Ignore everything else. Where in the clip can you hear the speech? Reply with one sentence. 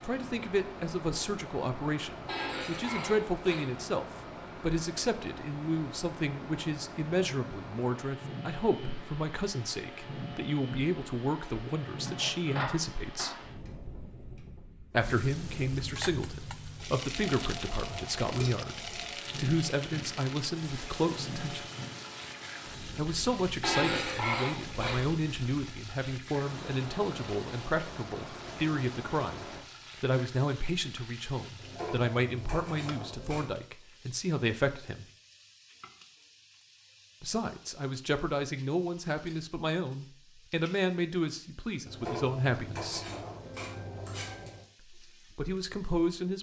You can hear the speech from 0.0 to 13.4 s, from 14.9 to 21.7 s, from 22.9 to 35.0 s, from 37.2 to 43.0 s and from 44.9 to 46.3 s.